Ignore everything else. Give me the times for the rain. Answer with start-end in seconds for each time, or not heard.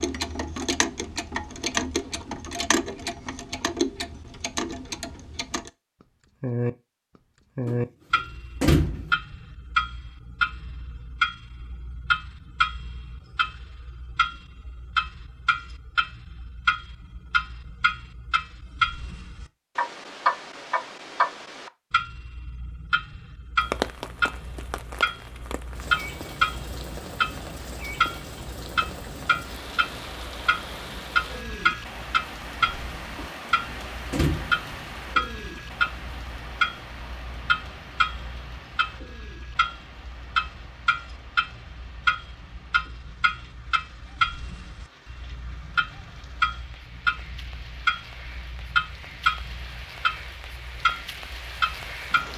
23.6-52.3.